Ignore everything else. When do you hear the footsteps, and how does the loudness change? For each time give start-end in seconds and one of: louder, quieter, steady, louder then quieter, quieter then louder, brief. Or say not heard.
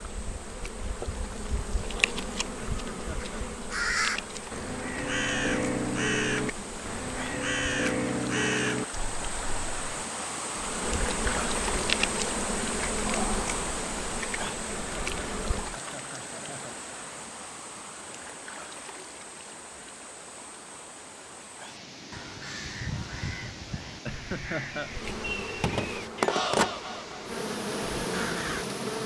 not heard.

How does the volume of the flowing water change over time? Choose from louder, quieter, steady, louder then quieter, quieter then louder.
louder then quieter.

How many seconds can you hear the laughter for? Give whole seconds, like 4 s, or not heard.
4 s.